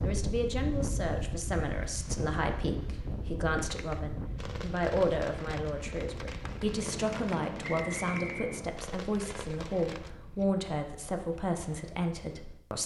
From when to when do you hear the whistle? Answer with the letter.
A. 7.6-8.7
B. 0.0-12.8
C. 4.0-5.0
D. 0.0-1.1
A.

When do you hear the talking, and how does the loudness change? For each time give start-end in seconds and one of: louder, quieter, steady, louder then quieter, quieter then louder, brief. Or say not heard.
0.0-12.8 steady.